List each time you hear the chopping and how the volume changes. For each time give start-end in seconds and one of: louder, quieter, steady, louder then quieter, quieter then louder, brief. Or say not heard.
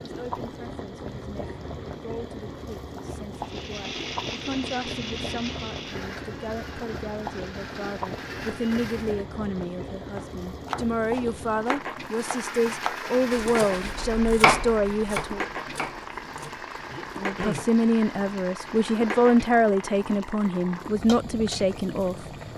10.2-17.7 louder then quieter.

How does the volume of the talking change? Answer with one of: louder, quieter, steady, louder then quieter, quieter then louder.
louder.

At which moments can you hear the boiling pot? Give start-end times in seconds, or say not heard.
0.0-22.5.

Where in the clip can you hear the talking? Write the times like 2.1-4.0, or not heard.
0.0-15.4, 17.1-22.1.